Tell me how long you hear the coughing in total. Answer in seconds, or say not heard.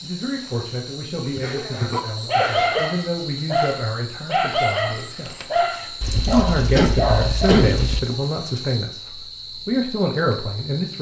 3 s.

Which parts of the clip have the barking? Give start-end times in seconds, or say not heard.
1.2-7.7.